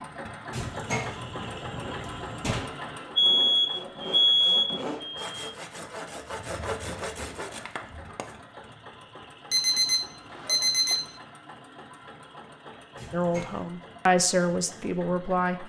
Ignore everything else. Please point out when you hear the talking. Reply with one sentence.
The talking can be heard from 13.1 to 15.6 s.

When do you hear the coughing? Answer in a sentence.
You can't hear the coughing here.